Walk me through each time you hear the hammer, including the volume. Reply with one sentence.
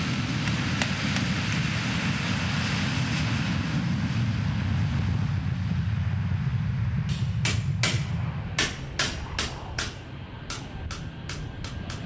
You can hear the hammer briefly from 0.2 to 1.8 s; and from 7.0 to 12.0 s, getting quieter.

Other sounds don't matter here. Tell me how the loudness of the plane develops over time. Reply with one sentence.
The loudness of the plane goes down.